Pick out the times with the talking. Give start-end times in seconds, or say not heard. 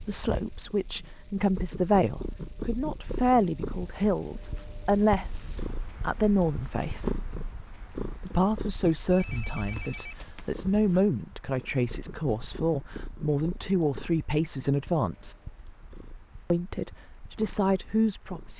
0.0-7.2, 8.2-15.3, 16.5-18.5.